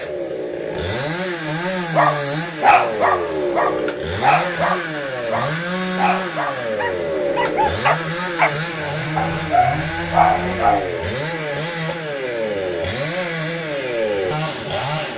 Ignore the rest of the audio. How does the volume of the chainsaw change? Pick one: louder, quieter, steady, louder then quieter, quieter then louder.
steady.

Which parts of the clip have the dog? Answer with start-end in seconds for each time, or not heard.
1.9-8.5, 9.2-10.9.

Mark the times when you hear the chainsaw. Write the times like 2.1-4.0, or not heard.
0.0-15.1.